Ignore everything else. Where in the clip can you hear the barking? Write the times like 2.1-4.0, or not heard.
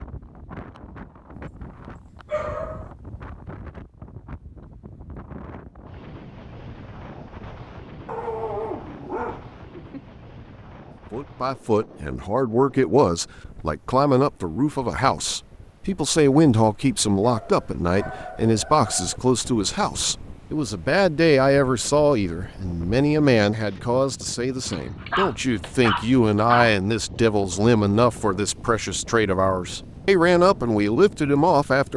2.2-2.9, 8.1-10.0, 17.2-19.2, 24.6-26.8.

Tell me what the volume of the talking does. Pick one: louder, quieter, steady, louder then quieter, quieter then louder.
steady.